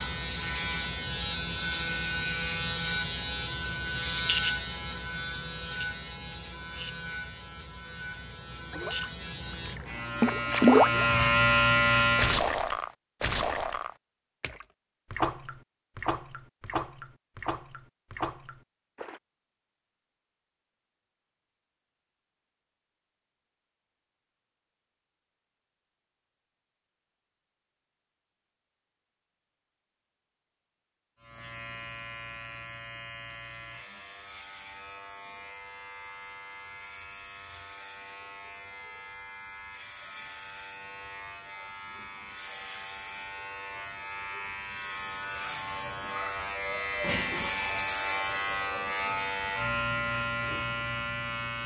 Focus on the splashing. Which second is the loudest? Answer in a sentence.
The loudest moment of the splashing is at 11 seconds.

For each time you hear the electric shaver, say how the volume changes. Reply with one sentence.
The electric shaver can be heard from 0.0 to 12.4 s, getting quieter then louder; and from 31.2 to 51.6 s, getting louder.